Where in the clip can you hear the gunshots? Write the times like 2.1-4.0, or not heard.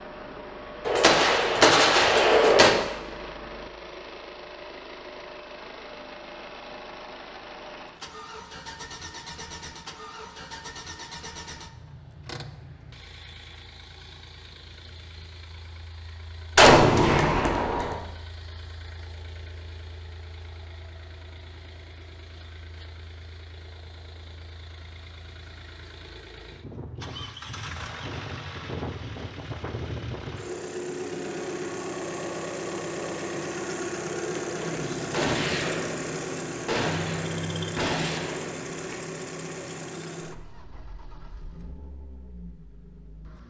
0.8-2.7, 16.6-17.9, 34.5-39.0.